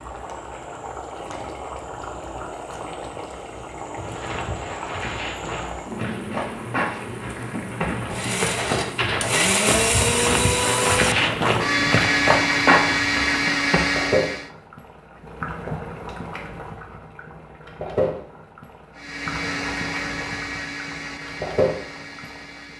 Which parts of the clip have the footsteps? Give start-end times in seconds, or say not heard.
4.0-14.0.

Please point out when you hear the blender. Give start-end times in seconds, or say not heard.
8.1-14.5, 18.9-22.7.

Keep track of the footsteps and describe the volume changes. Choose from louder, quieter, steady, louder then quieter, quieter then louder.
louder.